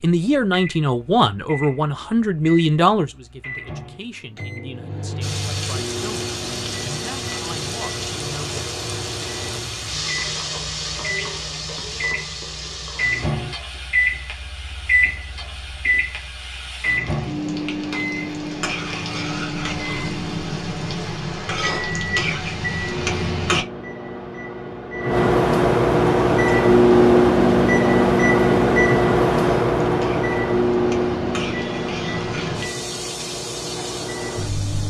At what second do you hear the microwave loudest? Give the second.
27 s.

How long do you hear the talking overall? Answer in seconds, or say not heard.
9 s.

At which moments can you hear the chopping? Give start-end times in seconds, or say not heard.
not heard.